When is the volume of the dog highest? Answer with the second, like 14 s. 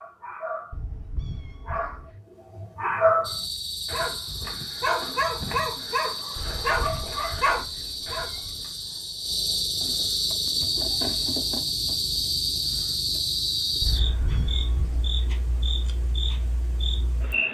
3 s.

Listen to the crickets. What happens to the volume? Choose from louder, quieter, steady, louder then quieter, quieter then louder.
louder then quieter.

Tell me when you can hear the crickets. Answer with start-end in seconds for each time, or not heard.
3.2-17.4.